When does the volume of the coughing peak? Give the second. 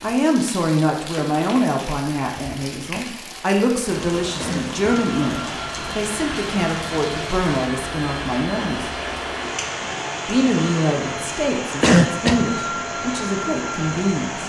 12 s.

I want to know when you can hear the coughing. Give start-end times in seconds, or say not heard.
4.4-4.9, 11.8-12.4.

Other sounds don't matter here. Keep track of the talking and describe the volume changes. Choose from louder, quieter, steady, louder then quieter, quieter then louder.
steady.